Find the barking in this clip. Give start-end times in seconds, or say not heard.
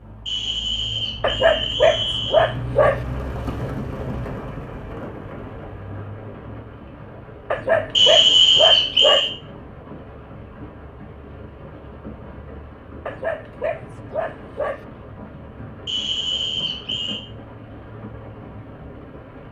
1.2-3.0, 7.5-9.3, 13.1-14.8.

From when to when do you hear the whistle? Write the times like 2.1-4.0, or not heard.
0.2-2.5, 8.0-9.3, 15.8-17.2.